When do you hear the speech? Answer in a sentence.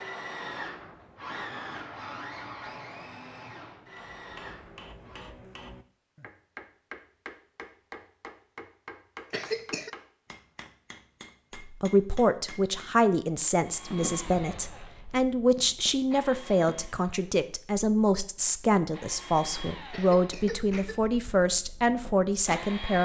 The speech can be heard from 11.6 to 23.0 s.